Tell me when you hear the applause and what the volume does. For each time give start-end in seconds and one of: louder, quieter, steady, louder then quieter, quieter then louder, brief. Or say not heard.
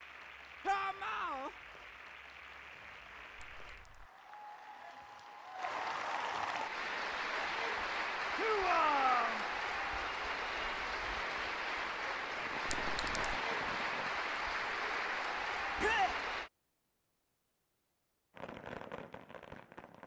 0.0-16.5 louder.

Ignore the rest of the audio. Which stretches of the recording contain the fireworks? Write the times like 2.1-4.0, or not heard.
12.3-14.2, 18.4-20.0.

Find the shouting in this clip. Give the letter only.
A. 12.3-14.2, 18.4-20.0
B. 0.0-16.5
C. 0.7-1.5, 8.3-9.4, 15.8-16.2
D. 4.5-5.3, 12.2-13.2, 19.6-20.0
C.